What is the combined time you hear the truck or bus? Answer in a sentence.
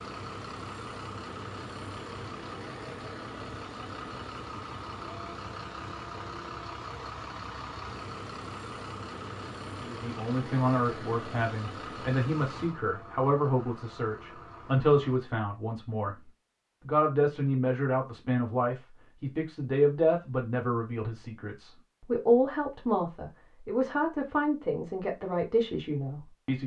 You can hear the truck or bus for 15 seconds altogether.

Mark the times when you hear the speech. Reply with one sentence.
You can hear the speech from 9.8 to 16.1 s and from 16.8 to 26.6 s.